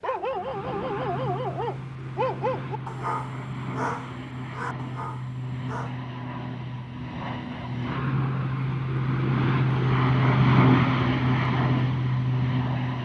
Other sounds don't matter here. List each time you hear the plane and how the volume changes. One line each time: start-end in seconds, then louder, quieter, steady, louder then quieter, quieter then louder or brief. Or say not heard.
0.0-13.0 louder.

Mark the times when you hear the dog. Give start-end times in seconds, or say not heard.
0.0-6.0.